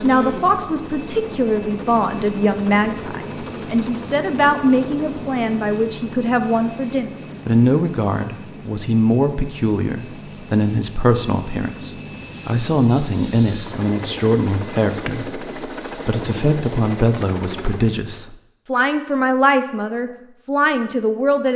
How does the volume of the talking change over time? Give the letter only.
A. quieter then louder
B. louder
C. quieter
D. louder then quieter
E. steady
E.